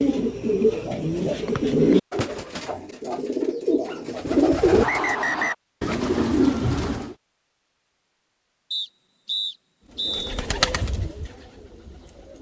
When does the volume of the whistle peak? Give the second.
5 s.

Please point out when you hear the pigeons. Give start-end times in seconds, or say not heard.
0.0-7.2, 9.9-12.3.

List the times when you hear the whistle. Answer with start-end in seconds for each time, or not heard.
1.6-2.2, 4.8-5.5, 8.7-10.4.